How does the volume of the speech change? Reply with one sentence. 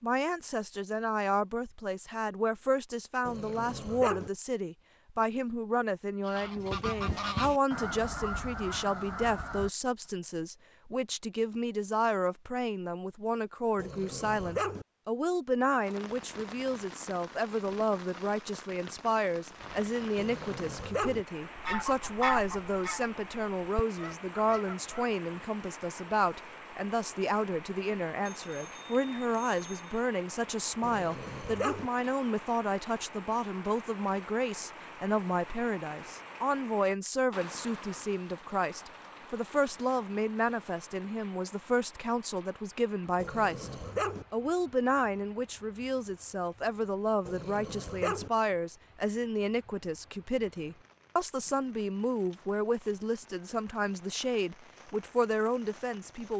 The volume of the speech stays about the same.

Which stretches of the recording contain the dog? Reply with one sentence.
You can hear the dog from 3.2 to 4.3 s, from 13.8 to 14.8 s, from 20.1 to 21.2 s, from 30.8 to 31.9 s, from 43.1 to 44.2 s and from 47.2 to 48.3 s.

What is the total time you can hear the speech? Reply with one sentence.
You can hear the speech for 56 seconds altogether.